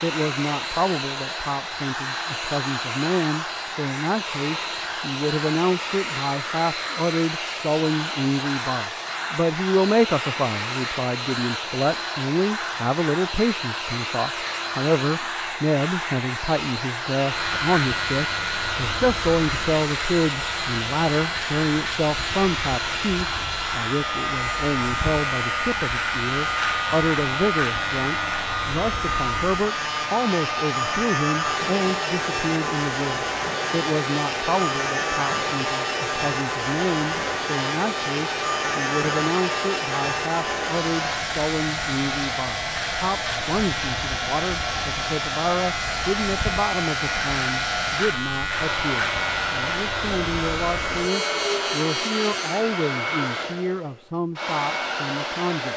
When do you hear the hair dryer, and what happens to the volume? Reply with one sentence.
The hair dryer can be heard from 0.0 to 55.7 s, at a steady volume.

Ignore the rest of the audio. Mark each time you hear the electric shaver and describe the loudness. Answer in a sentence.
You can hear the electric shaver from 17.2 to 52.6 s, at a steady volume.